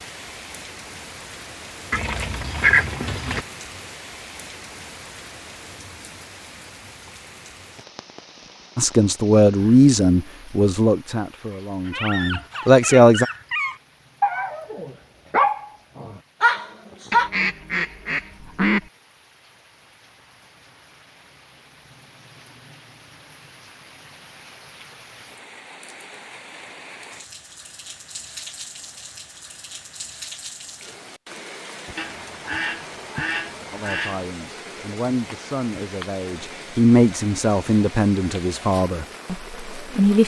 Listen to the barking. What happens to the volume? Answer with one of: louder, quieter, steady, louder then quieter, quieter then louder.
louder.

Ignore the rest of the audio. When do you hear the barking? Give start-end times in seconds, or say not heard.
11.5-17.3.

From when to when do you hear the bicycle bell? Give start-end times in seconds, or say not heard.
not heard.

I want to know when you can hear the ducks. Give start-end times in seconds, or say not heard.
1.9-3.5, 17.1-18.9, 31.9-34.3.